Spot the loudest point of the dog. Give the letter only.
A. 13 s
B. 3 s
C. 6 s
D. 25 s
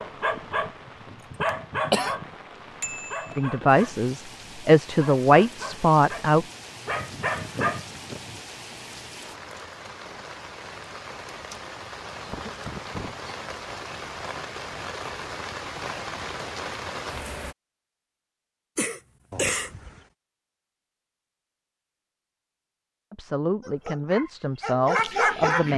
D.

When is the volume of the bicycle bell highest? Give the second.
3 s.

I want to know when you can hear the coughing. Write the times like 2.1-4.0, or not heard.
1.4-2.1, 12.2-13.2, 18.8-19.7.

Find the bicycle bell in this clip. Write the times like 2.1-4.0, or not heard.
2.8-3.4, 19.3-20.1.